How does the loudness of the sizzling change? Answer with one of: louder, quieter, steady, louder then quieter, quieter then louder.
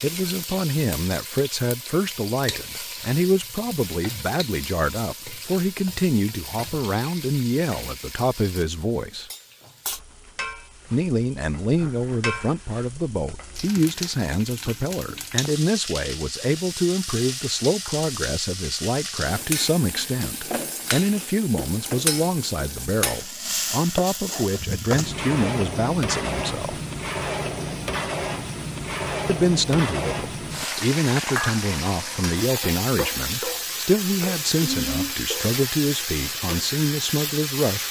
louder.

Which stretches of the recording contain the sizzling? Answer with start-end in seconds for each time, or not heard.
0.0-37.8.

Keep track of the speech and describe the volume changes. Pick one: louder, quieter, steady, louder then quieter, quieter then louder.
steady.